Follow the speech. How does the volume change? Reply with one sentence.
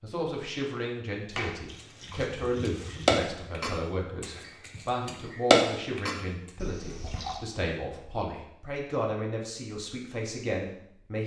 The loudness of the speech stays about the same.